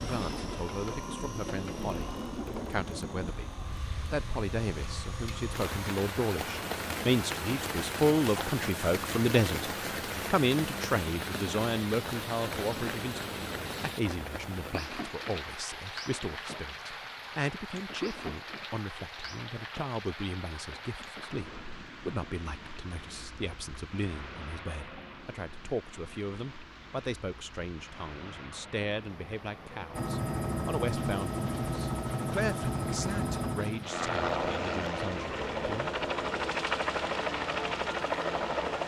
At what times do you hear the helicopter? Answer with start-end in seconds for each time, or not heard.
0.0-13.9, 29.9-38.8.